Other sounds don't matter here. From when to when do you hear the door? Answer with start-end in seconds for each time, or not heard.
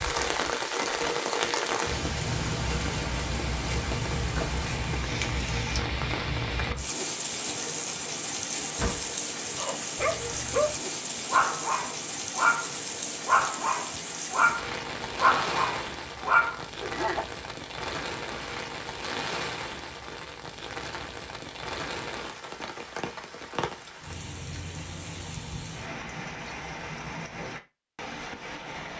8.6-9.1.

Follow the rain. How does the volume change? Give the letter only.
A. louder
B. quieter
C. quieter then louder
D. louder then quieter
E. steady
B.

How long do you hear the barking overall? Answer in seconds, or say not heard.
8 s.